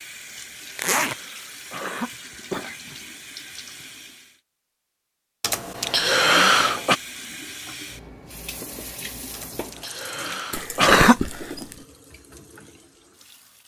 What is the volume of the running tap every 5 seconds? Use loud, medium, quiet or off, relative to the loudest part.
loud, loud, medium.